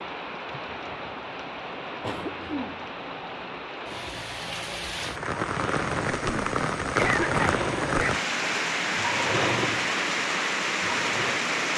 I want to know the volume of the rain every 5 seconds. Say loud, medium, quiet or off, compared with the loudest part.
medium, loud, loud.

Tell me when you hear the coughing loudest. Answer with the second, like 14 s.
7 s.